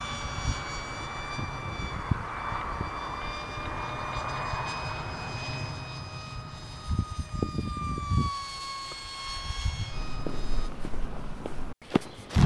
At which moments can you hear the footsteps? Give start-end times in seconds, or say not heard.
9.9-12.4.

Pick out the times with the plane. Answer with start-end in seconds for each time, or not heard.
0.0-10.7.